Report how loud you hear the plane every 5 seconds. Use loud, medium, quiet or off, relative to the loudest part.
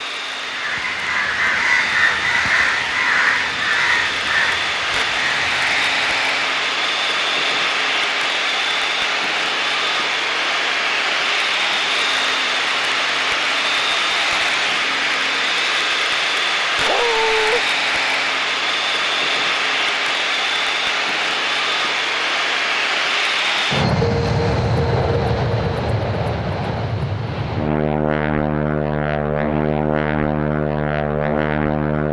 medium, loud, loud, loud, loud, loud, loud.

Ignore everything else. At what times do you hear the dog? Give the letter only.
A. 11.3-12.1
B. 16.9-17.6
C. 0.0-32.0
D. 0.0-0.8
B.